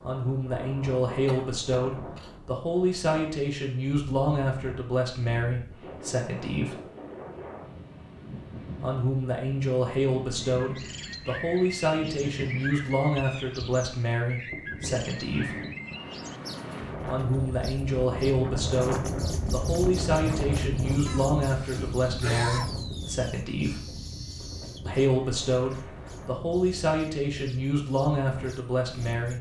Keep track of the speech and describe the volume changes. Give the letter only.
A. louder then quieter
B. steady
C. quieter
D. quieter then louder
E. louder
B.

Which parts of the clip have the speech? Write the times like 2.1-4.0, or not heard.
0.0-6.8, 8.8-15.6, 17.1-23.8, 24.9-29.3.